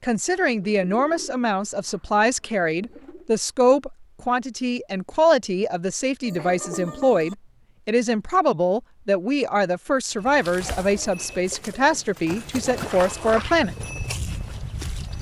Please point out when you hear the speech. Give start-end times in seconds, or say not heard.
0.0-13.8.